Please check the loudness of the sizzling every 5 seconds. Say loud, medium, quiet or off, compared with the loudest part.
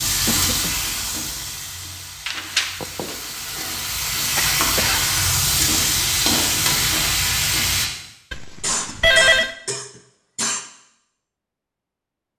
medium, loud, off.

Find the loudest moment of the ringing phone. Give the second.
9 s.